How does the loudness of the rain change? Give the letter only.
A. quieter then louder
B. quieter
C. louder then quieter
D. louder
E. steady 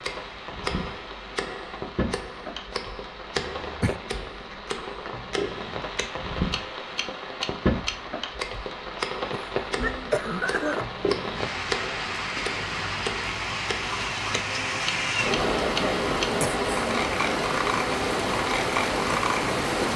D.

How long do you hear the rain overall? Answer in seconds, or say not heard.
20 s.